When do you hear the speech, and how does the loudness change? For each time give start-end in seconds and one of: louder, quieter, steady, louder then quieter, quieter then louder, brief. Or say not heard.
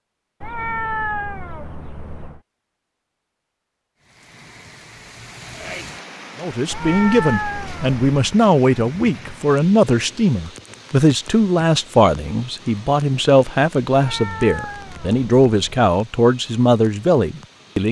6.4-17.8 steady.